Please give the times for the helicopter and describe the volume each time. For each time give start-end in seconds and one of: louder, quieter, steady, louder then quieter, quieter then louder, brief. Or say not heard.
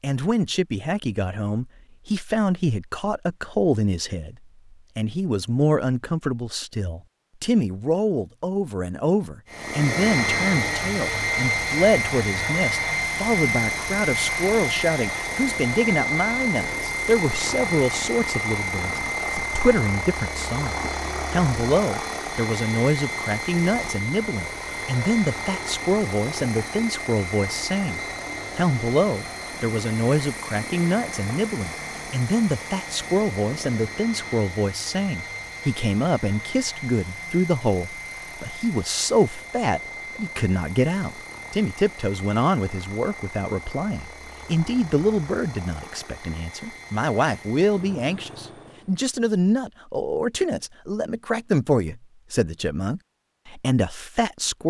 9.5-49.0 quieter.